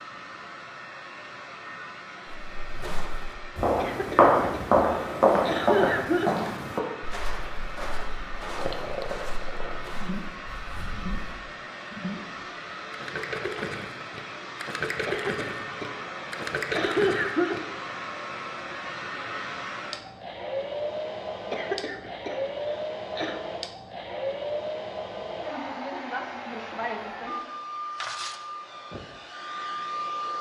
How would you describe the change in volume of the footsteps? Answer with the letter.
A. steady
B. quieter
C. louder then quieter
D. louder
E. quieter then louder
B.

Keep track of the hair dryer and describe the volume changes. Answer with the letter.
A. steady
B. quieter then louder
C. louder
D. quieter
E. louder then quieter
C.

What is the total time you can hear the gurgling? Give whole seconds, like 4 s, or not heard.
9 s.